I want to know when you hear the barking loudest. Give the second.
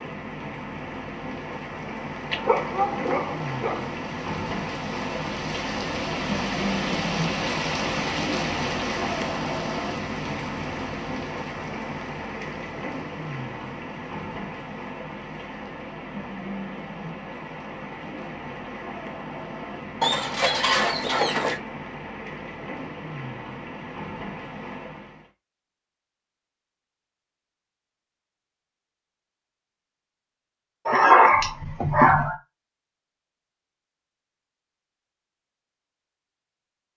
31 s.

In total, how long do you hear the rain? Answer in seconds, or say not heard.
25 s.